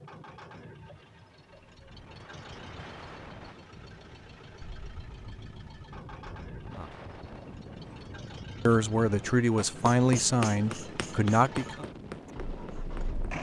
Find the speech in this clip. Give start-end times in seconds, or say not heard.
8.7-11.8.